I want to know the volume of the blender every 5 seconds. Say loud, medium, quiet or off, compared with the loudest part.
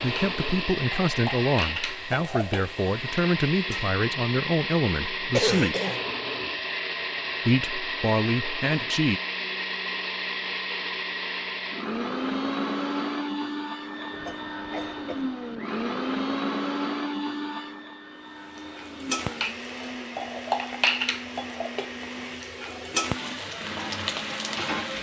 loud, loud, loud, loud, medium.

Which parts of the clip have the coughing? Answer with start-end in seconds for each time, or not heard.
5.3-6.0, 14.1-15.2.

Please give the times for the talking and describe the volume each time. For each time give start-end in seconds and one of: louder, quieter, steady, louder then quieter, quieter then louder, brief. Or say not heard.
0.0-5.8 steady
7.5-9.2 brief.